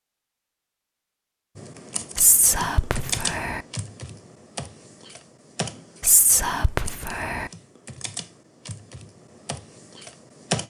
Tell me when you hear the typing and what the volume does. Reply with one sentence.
You can hear the typing from 1.6 to 10.6 s, getting quieter.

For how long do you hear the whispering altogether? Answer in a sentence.
You can hear the whispering for 3 seconds altogether.